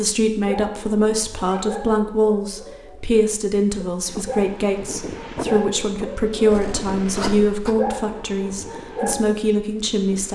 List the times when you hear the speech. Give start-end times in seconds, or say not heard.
0.0-10.3.